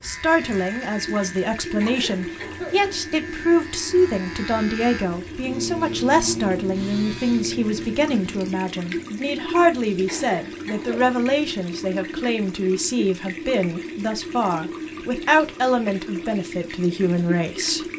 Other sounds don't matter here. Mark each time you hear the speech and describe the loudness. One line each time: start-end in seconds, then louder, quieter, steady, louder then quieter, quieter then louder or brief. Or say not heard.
0.0-17.9 steady.